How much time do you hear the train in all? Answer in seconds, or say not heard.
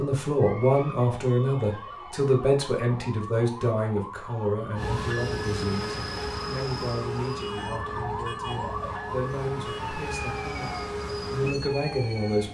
8 s.